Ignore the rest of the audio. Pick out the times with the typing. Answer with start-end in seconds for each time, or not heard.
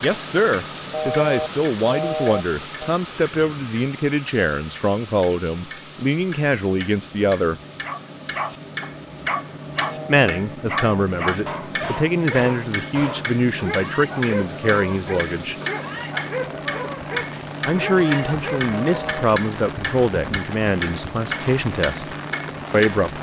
not heard.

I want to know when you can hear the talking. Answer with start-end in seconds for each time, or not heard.
0.0-7.5, 10.1-15.6, 17.6-23.1.